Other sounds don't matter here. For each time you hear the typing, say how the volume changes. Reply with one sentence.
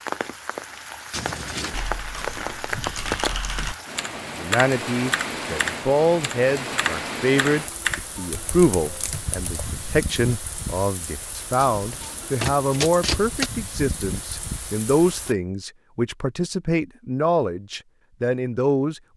You can hear the typing from 1.5 to 10.1 s, getting louder then quieter.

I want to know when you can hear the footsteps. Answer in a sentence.
The footsteps can't be heard in this clip.